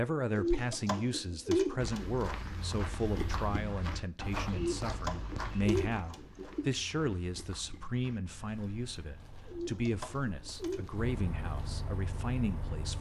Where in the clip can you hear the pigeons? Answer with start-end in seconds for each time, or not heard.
0.3-2.2, 4.5-6.7, 9.4-10.9.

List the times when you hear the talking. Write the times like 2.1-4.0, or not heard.
0.0-12.9.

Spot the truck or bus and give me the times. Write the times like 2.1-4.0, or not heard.
8.2-12.9.